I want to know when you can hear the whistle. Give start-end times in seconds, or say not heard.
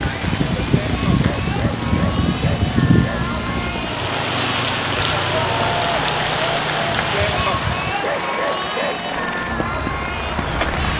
not heard.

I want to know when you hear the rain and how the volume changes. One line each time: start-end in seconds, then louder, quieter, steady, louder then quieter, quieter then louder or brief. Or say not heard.
0.0-10.9 quieter.